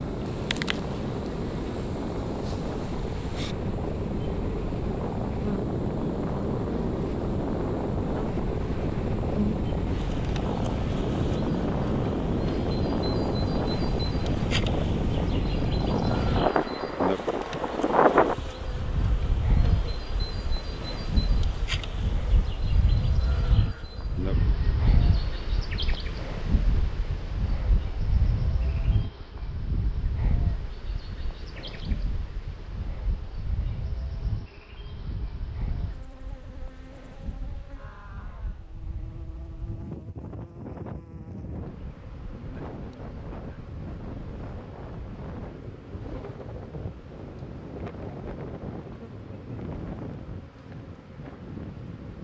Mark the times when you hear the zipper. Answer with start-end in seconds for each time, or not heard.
not heard.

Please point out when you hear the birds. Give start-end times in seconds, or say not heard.
not heard.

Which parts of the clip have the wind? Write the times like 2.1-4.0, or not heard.
0.0-52.1.